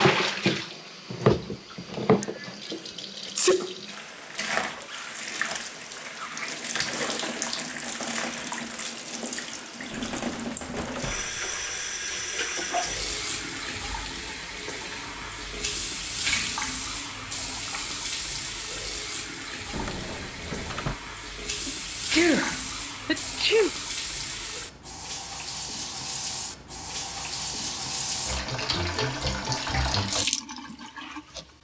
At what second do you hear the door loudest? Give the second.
21 s.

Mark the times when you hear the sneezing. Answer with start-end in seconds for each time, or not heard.
2.2-3.8, 21.6-23.7.